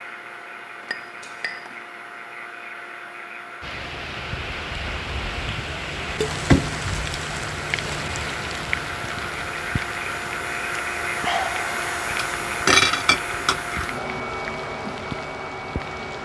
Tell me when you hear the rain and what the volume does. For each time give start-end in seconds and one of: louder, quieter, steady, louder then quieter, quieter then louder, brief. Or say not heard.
3.6-16.2 louder then quieter.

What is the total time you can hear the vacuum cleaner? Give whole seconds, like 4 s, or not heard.
16 s.